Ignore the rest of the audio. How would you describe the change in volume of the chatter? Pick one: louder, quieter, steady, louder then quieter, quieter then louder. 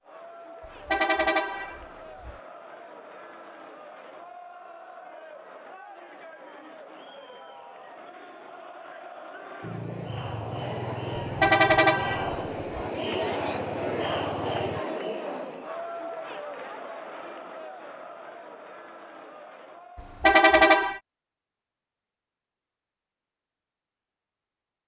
louder then quieter.